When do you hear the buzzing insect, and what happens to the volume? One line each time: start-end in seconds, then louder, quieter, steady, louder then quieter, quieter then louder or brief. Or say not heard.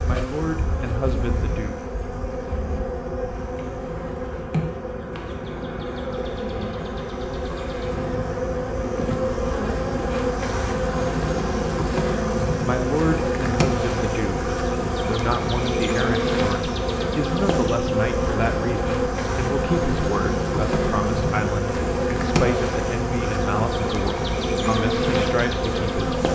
0.0-26.3 louder.